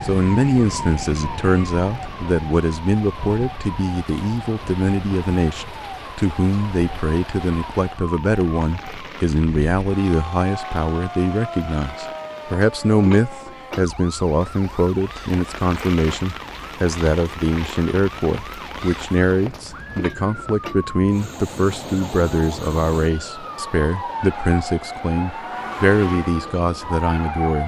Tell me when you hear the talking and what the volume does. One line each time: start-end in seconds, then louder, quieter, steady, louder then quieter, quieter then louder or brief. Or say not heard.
0.0-27.6 steady.